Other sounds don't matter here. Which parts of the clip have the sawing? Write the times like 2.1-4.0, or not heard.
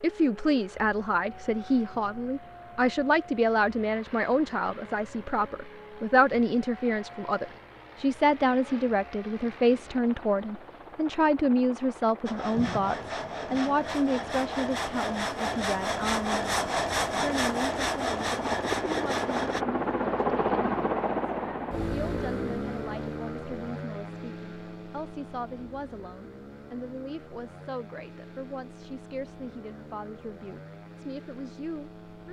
12.2-19.6.